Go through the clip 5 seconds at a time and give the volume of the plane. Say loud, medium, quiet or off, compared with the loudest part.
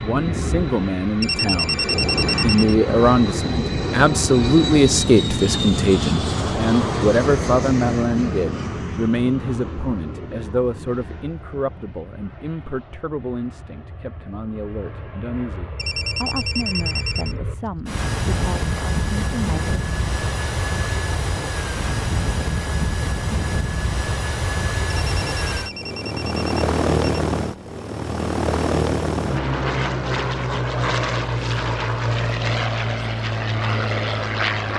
loud, loud, quiet, medium, loud, loud, loud.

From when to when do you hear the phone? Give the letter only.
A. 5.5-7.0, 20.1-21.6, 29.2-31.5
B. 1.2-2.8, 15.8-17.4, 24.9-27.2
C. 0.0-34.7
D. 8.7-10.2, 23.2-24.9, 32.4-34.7
B.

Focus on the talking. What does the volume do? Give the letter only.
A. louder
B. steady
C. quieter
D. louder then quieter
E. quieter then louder
C.